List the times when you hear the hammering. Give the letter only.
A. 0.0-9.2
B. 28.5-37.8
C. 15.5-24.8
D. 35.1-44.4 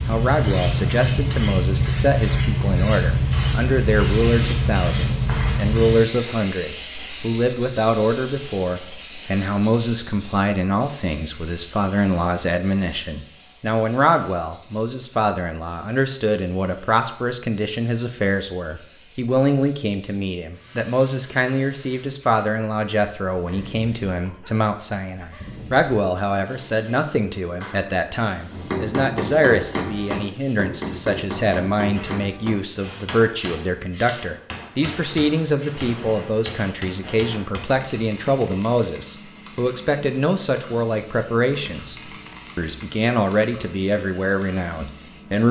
B.